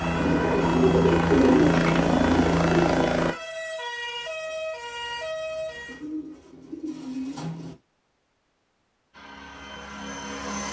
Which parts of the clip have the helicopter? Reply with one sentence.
The helicopter can be heard from 0.0 to 3.4 s and from 9.1 to 10.6 s.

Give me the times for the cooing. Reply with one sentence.
You can hear the cooing from 0.1 to 3.0 s and from 5.8 to 7.8 s.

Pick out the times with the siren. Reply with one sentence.
You can hear the siren from 0.0 to 6.0 s.